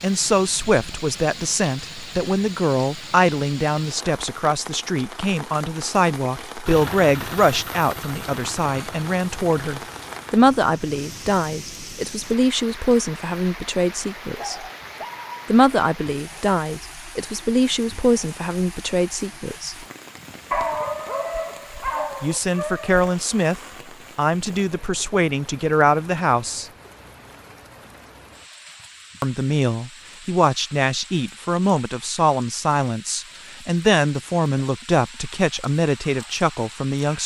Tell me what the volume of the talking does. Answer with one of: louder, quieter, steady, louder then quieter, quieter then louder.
steady.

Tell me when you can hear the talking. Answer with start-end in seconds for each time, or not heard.
0.0-14.7, 15.4-19.8, 22.2-26.6, 29.2-37.2.